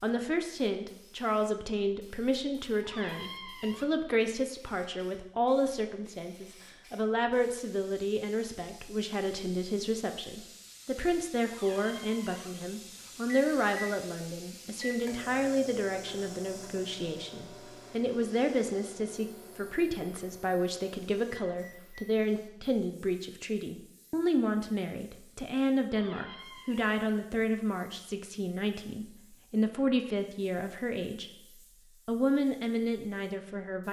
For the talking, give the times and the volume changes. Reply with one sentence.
The talking can be heard from 0.0 to 33.8 s, at a steady volume.